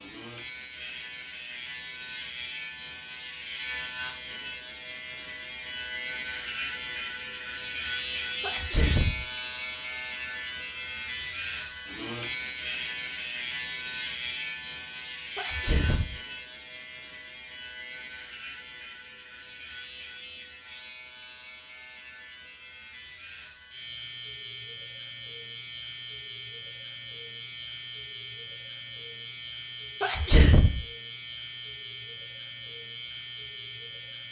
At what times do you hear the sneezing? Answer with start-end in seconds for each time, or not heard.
8.4-9.2, 15.3-16.1, 30.0-30.8.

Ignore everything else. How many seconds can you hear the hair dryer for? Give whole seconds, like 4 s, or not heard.
not heard.